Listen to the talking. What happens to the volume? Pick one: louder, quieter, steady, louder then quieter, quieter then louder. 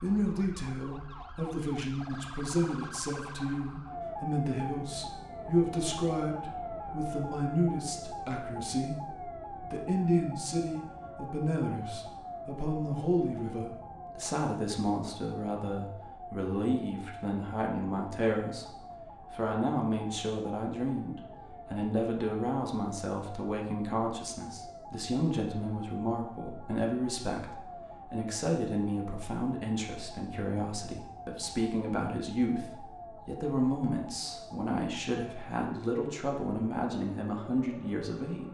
steady.